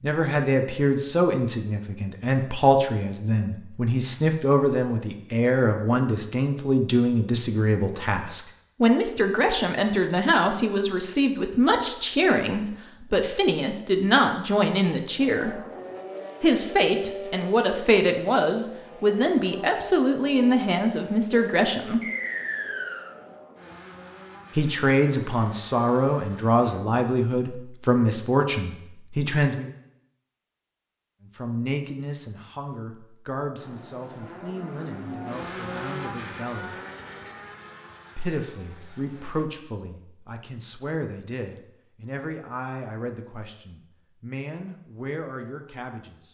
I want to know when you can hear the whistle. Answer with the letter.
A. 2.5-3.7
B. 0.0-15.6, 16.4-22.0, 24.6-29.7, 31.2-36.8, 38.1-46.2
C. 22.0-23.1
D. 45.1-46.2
C.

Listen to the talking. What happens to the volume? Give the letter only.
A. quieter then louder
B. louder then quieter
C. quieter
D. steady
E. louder
C.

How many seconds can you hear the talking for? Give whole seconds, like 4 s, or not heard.
40 s.